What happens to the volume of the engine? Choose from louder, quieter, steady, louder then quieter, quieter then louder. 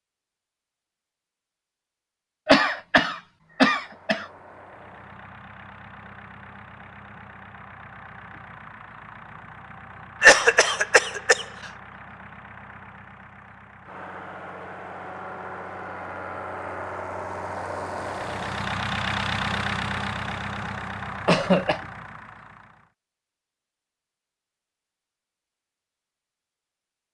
louder.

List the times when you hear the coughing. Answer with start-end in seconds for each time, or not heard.
2.5-4.2, 10.2-11.4, 21.2-21.8.